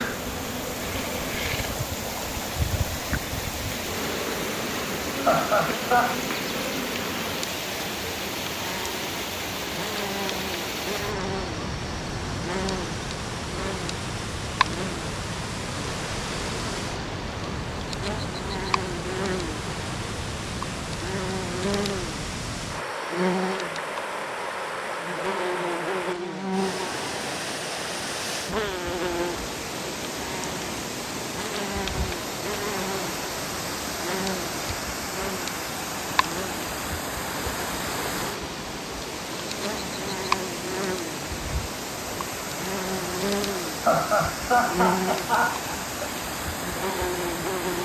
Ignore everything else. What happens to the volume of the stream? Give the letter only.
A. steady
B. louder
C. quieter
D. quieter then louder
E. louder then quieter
A.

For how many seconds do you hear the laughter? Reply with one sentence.
You can hear the laughter for 3 seconds altogether.